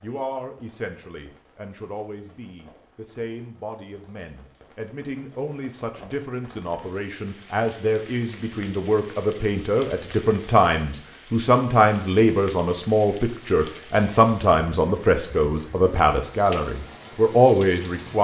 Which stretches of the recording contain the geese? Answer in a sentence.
The geese can't be heard in this clip.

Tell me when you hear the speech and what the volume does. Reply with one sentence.
The speech can be heard from 0.0 to 18.1 s, getting louder.